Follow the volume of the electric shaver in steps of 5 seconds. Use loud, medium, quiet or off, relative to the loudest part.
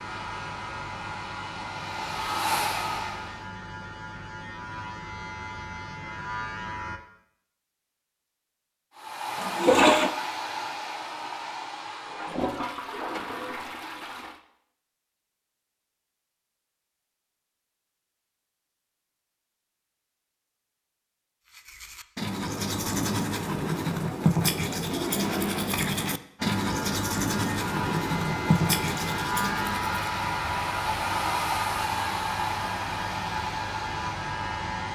medium, loud, off, off, off, loud, loud.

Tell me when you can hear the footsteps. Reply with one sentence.
The footsteps can't be heard in this clip.